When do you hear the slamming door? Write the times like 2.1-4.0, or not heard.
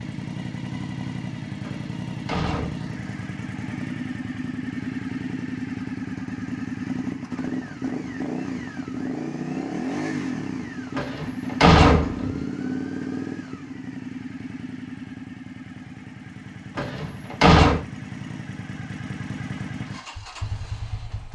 1.6-2.9, 10.9-12.4, 16.8-17.8.